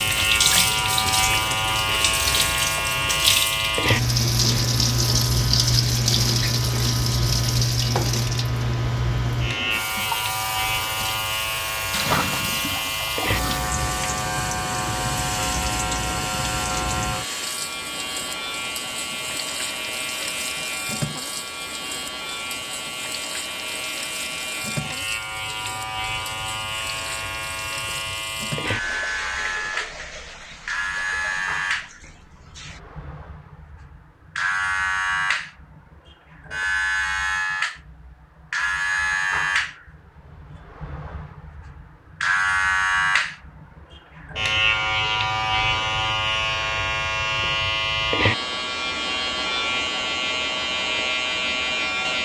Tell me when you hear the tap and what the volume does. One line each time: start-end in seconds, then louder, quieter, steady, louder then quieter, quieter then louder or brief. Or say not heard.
0.0-32.8 quieter.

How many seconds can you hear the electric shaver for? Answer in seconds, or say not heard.
52 s.